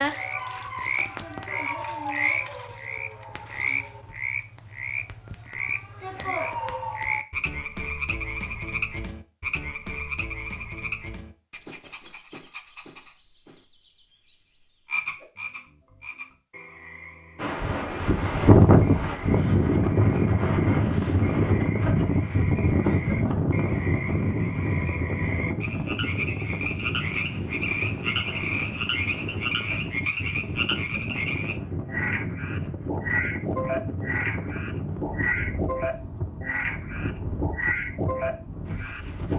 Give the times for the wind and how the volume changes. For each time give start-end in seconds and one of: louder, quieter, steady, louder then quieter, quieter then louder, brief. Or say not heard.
17.4-39.3 quieter.